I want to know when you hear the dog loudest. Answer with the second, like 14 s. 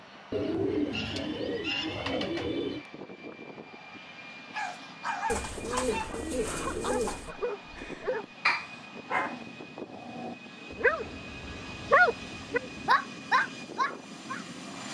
12 s.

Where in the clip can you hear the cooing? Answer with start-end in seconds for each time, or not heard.
0.3-2.9, 5.2-7.3, 10.9-12.9.